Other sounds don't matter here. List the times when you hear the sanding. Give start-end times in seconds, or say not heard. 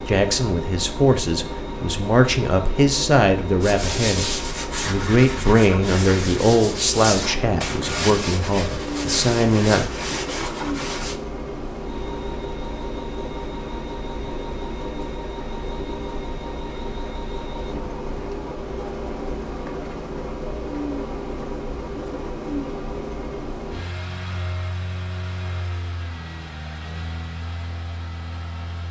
3.6-11.2.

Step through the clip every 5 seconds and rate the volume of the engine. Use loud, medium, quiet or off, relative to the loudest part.
loud, loud, loud, loud, loud, medium.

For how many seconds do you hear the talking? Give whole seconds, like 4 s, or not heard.
10 s.